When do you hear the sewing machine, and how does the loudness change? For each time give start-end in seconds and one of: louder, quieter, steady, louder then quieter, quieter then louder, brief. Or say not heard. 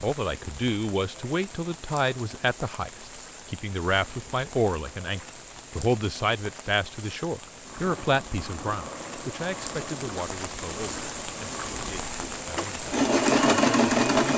7.6-14.3 louder.